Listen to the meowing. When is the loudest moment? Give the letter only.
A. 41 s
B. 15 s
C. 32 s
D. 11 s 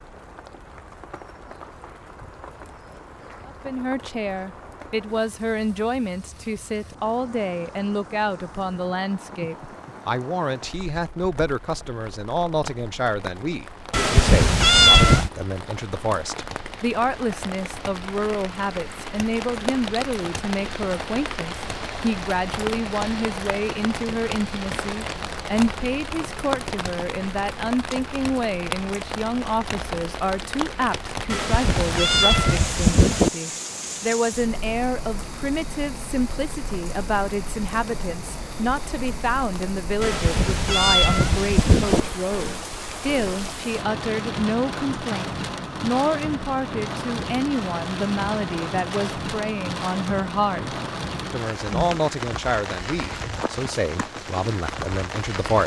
B.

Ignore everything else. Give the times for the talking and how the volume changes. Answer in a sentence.
You can hear the talking from 3.5 to 55.6 s, at a steady volume.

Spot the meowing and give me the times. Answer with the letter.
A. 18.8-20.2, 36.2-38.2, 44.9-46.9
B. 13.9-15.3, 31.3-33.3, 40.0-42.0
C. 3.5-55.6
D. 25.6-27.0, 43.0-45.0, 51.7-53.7
B.